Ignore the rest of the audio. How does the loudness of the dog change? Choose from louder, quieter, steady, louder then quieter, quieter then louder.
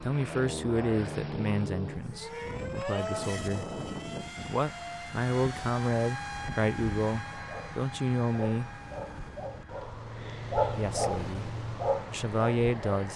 louder.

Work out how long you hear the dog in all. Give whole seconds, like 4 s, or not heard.
6 s.